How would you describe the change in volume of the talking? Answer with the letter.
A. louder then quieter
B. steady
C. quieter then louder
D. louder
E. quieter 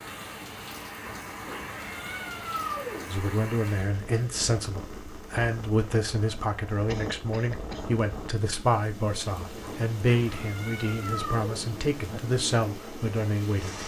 B.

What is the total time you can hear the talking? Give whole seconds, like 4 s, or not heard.
11 s.